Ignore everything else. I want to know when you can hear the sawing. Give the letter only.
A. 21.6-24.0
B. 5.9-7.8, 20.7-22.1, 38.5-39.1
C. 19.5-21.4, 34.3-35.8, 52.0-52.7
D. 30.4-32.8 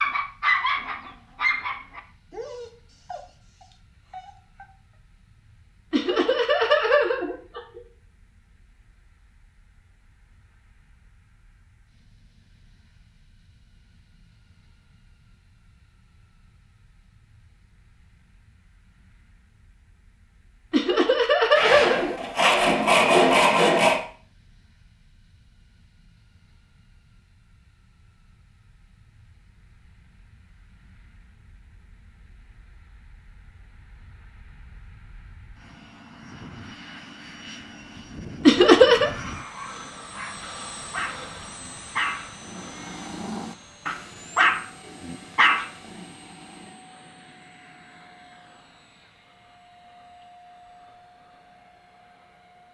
A.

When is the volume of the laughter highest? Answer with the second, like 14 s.
39 s.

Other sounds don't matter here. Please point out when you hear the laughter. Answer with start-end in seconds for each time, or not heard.
5.9-7.8, 20.7-22.1, 38.5-39.1.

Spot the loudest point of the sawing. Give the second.
23 s.